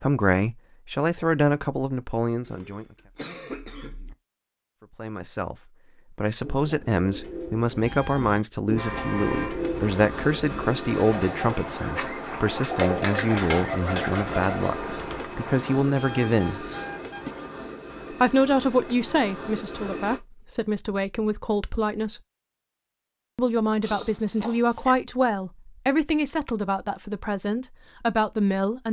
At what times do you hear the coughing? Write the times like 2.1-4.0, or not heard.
2.4-4.2, 16.6-17.4, 23.8-24.9.